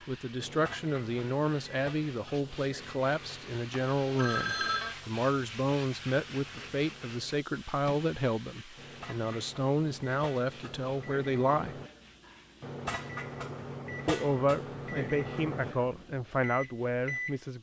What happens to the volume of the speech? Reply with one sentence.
The volume of the speech stays about the same.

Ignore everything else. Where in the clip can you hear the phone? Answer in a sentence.
The phone can be heard from 3.7 to 5.0 s.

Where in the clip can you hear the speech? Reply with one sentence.
The speech can be heard from 0.1 to 11.8 s and from 14.1 to 17.5 s.